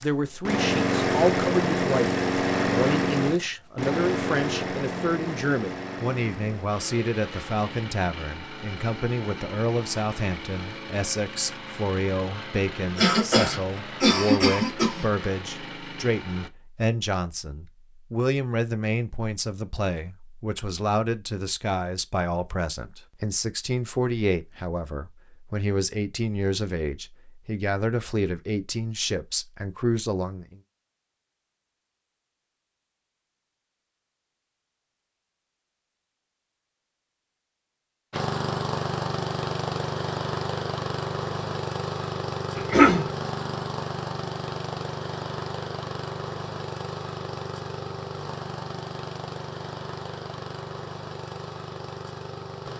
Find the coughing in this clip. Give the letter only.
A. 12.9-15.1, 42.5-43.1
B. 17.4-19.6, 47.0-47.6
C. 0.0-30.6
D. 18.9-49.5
A.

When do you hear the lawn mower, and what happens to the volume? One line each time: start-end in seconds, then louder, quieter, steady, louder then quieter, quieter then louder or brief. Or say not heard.
0.0-16.5 quieter
38.1-52.7 quieter.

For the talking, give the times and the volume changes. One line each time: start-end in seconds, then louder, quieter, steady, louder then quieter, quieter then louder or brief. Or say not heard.
0.0-30.6 steady.